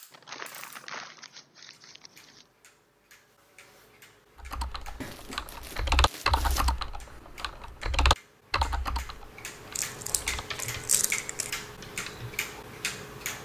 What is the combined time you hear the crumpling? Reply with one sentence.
You can hear the crumpling for 6 seconds altogether.